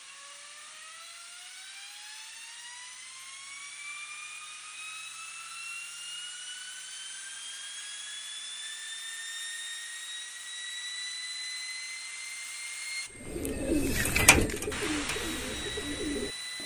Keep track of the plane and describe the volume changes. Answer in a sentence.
The volume of the plane goes up.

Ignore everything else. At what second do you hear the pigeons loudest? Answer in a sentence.
The loudest moment of the pigeons is at 14 seconds.